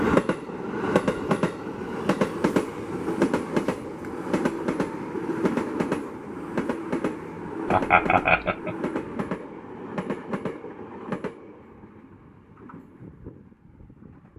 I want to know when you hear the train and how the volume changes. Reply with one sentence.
The train can be heard from 0.0 to 14.3 s, getting quieter.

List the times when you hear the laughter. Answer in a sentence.
The laughter can be heard from 7.7 to 8.8 s.